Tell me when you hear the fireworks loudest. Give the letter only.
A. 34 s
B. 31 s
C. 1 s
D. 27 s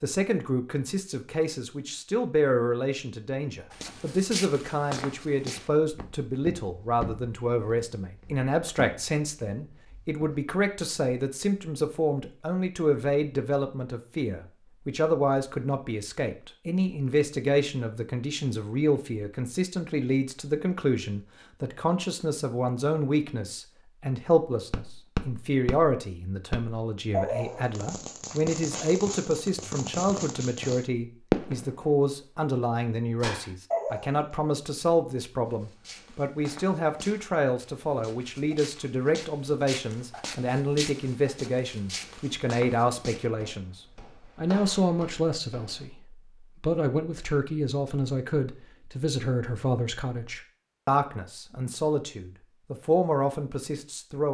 B.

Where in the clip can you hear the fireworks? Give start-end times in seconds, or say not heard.
24.7-31.9, 33.2-34.2.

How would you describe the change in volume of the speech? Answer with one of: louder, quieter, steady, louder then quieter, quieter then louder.
steady.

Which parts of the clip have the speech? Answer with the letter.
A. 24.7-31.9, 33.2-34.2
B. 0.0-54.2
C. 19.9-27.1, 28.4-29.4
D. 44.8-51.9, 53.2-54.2
B.